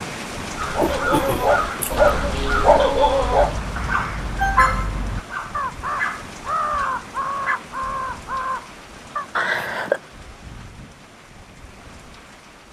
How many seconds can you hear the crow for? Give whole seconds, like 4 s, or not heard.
9 s.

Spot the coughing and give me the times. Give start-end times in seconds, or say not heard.
0.8-2.1, 4.3-5.0, 9.3-10.0.